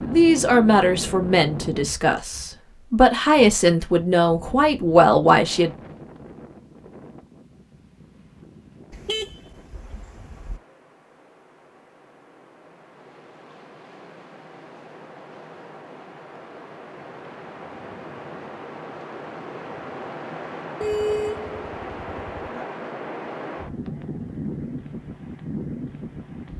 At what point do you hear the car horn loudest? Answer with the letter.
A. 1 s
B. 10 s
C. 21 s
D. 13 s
C.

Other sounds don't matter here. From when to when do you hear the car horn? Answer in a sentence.
The car horn can be heard from 8.9 to 10.6 s and from 20.8 to 22.6 s.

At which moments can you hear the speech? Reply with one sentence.
The speech can be heard from 0.0 to 5.7 s.